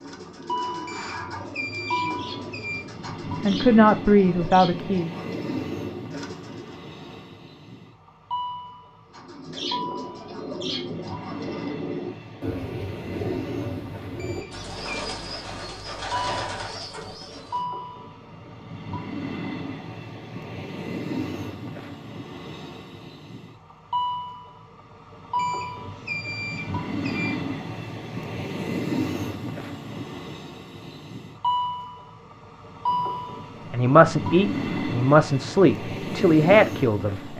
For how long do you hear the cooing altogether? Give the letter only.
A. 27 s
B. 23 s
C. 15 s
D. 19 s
C.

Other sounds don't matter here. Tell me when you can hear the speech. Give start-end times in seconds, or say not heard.
3.4-5.1, 33.7-37.3.